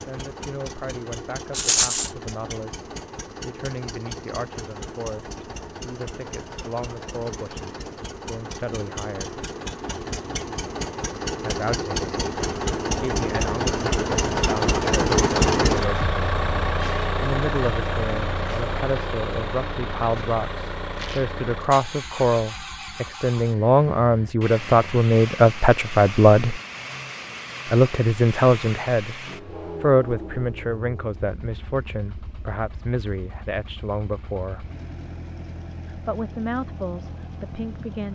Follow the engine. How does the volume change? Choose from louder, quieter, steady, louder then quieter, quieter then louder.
louder then quieter.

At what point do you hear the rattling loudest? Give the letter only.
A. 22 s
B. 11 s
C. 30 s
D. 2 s
D.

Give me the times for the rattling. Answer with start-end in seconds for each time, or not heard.
1.5-2.1, 20.9-21.3.